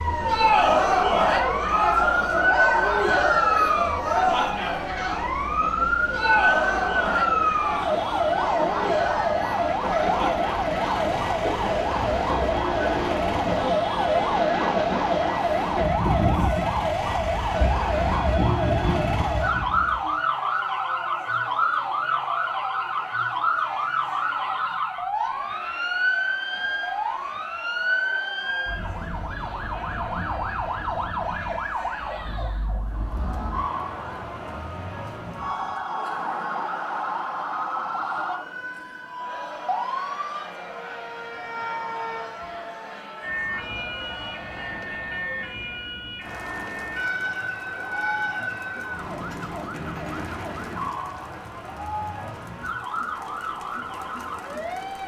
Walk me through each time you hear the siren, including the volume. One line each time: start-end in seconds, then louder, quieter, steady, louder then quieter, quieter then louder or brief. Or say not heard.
0.0-55.0 quieter.